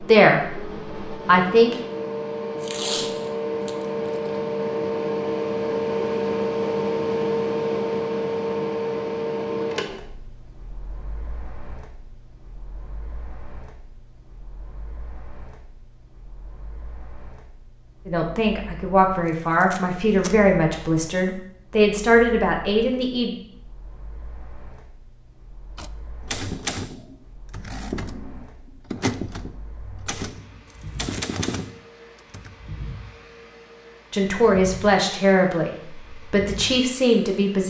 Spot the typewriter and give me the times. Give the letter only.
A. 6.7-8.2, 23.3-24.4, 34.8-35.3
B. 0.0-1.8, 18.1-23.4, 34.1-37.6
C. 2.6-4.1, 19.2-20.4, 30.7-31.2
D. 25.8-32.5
D.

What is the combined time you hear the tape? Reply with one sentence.
You can hear the tape for 3 seconds altogether.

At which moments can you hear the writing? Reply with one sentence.
The writing can't be heard in this clip.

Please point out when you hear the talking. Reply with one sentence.
You can hear the talking from 0.0 to 1.8 s, from 18.1 to 23.4 s and from 34.1 to 37.6 s.